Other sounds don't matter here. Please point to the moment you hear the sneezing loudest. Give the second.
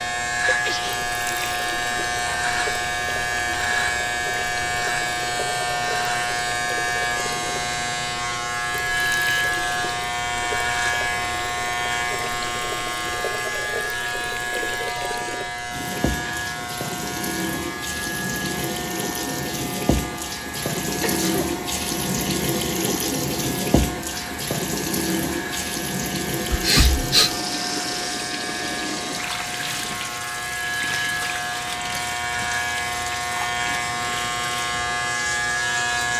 27 s.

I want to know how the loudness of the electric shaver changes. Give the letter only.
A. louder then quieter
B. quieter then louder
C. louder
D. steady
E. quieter
B.